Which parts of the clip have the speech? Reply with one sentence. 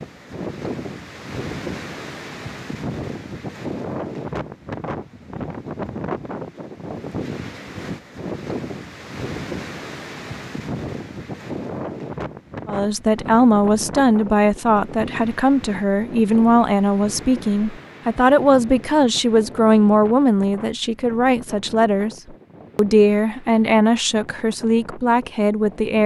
You can hear the speech from 12.7 to 22.1 s and from 22.8 to 26.0 s.